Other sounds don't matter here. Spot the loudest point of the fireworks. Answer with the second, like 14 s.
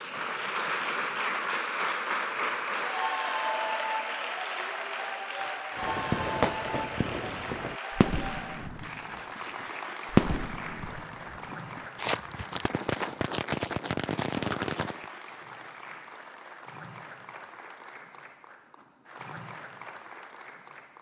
10 s.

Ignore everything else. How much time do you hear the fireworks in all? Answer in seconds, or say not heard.
9 s.